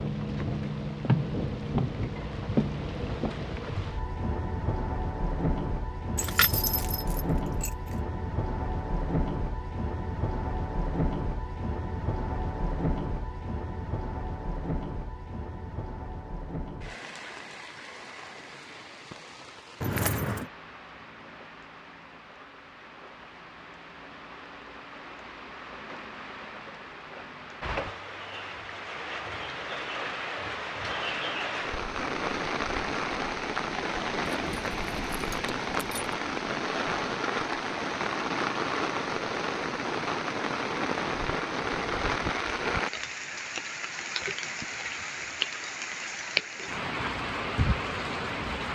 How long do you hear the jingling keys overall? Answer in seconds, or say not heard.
4 s.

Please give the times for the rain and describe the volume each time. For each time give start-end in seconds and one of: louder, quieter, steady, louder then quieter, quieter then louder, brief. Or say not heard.
0.0-48.7 quieter then louder.